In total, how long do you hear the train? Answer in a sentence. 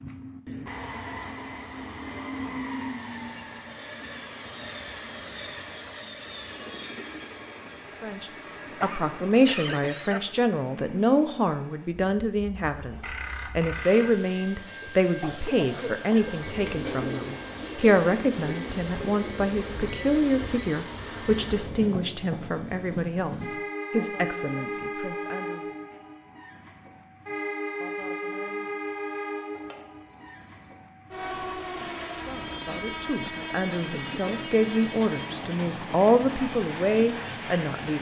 You can hear the train for 38 seconds altogether.